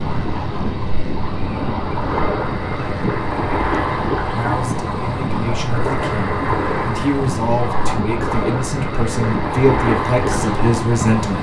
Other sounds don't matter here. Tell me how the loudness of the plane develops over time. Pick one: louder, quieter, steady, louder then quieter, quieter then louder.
steady.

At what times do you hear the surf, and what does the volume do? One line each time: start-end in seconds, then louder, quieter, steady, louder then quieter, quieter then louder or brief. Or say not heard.
0.0-11.3 steady.